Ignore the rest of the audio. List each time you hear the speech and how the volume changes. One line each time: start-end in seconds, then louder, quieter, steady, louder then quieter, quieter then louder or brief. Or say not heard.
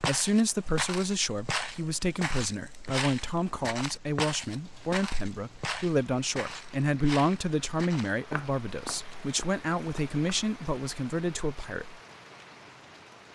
0.0-11.9 steady.